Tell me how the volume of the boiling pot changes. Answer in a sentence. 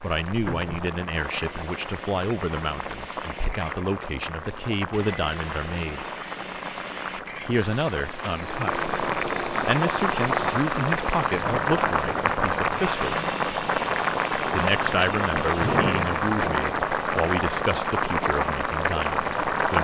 The volume of the boiling pot goes up.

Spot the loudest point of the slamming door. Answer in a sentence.
The volume of the slamming door peaks at 16 seconds.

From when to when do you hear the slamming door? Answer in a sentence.
You can hear the slamming door from 0.5 to 0.9 s and from 15.6 to 16.8 s.